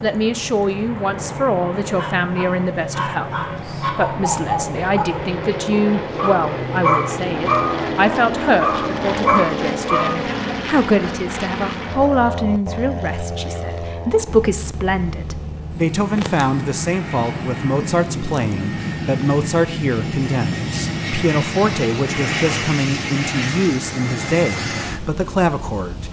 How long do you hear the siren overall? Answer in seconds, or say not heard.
not heard.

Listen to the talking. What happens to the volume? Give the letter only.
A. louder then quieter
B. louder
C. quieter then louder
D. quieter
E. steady
E.